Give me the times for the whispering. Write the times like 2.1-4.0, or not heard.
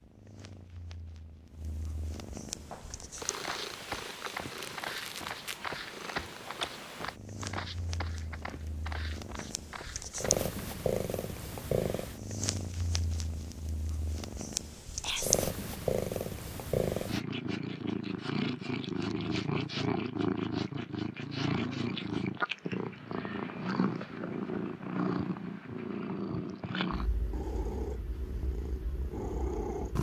15.0-15.5.